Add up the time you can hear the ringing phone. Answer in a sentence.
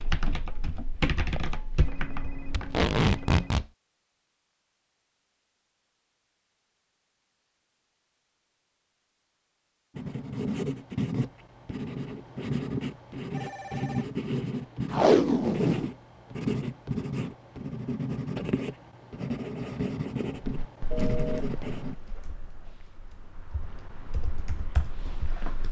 The ringing phone can be heard for 3 seconds in total.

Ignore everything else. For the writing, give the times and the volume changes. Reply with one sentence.
You can hear the writing from 9.9 to 21.9 s, at a steady volume.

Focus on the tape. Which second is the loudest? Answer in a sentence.
The loudest moment of the tape is at 15 seconds.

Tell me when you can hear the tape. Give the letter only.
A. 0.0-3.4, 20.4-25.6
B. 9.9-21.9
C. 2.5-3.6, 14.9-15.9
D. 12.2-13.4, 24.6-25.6
C.